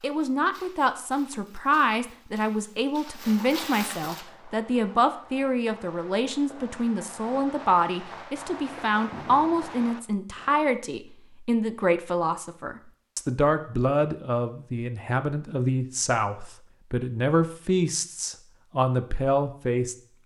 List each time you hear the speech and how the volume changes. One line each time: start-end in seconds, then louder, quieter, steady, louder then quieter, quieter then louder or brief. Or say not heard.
0.0-19.9 steady.